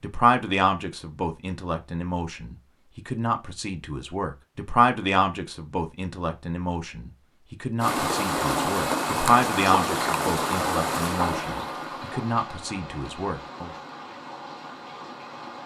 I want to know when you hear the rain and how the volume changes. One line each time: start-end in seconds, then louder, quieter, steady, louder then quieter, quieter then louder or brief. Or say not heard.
7.8-15.6 quieter.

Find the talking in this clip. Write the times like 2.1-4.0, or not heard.
0.0-13.7.